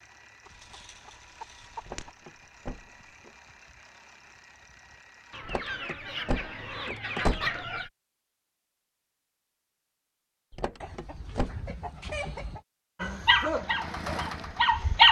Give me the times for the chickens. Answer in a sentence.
You can hear the chickens from 0.5 to 2.1 s, from 5.3 to 7.9 s and from 10.8 to 12.7 s.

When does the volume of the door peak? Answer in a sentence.
The volume of the door peaks at 7 seconds.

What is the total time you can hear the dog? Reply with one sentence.
The dog can be heard for 2 seconds in total.